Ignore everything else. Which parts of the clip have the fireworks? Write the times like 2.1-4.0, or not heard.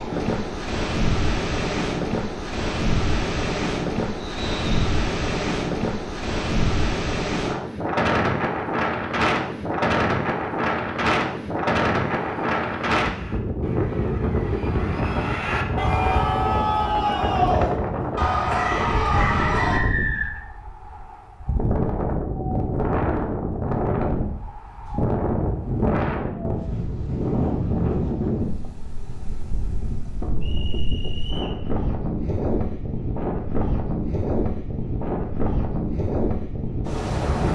not heard.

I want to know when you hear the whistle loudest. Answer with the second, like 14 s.
20 s.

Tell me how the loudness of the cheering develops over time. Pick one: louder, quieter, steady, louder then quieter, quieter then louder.
louder.